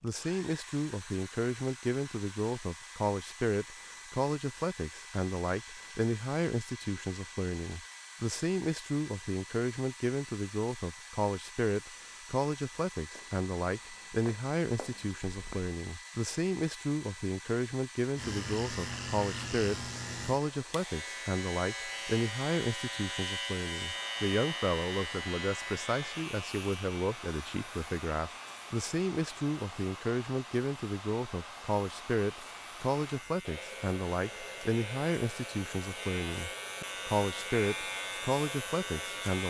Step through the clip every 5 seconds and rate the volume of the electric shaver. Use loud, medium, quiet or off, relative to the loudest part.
off, off, off, loud, loud, medium, medium, loud.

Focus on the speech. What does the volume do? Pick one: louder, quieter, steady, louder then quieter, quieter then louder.
steady.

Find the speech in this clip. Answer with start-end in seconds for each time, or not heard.
0.0-39.4.